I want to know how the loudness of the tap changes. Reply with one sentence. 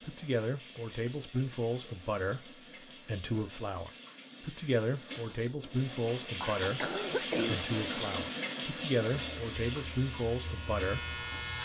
The loudness of the tap goes up, then down.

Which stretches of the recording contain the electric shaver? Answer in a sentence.
The electric shaver can be heard from 9.1 to 11.6 s.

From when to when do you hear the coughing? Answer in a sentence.
The coughing can be heard from 6.4 to 7.7 s.